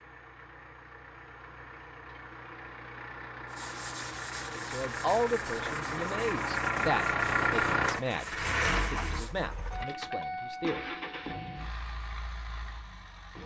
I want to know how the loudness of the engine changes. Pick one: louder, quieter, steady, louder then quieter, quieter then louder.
louder then quieter.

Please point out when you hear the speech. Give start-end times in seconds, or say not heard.
4.5-10.9.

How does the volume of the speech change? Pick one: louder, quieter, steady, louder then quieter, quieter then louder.
quieter.